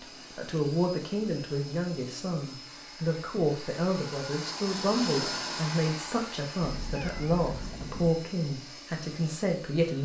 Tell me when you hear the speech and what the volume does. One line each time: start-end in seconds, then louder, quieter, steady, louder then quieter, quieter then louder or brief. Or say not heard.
0.0-10.0 steady.